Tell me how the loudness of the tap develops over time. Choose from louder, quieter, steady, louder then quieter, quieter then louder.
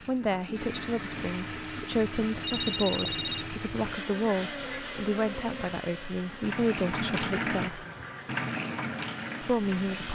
louder.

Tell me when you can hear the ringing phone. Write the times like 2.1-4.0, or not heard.
2.4-3.5.